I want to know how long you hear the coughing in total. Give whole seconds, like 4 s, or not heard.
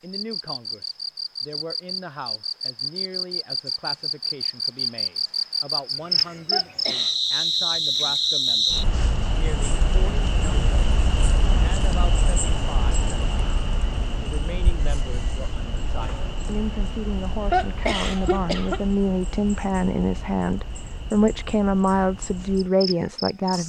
2 s.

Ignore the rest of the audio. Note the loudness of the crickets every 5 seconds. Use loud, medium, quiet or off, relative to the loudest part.
medium, loud, medium, quiet, quiet.